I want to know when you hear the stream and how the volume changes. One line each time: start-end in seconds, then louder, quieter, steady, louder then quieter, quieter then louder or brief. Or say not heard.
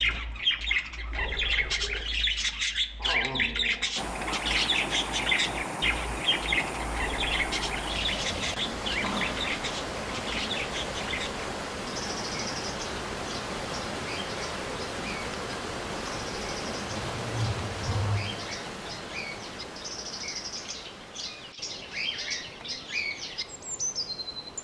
4.0-24.6 quieter.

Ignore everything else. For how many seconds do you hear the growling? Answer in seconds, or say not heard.
3 s.